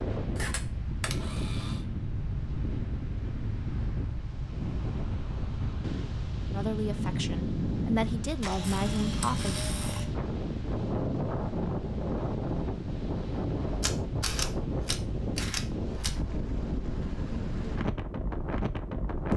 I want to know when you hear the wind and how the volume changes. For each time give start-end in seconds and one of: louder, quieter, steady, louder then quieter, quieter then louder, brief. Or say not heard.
0.0-19.3 steady.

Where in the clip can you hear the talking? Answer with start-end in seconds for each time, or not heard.
6.5-9.6.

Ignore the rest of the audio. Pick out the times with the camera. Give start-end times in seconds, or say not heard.
0.3-1.8, 8.4-10.1, 13.8-16.1.